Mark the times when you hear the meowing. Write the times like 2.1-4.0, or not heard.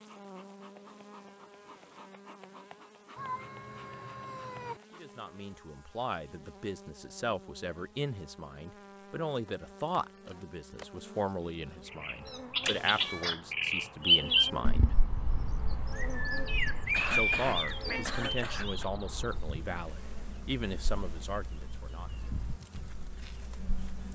3.1-4.8, 12.6-13.3, 17.1-18.1.